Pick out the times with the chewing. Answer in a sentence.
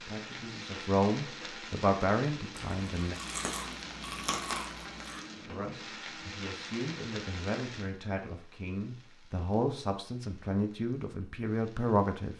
You can hear the chewing from 2.5 to 5.2 s.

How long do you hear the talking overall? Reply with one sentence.
You can hear the talking for 10 seconds altogether.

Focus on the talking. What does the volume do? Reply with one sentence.
The loudness of the talking goes down, then up.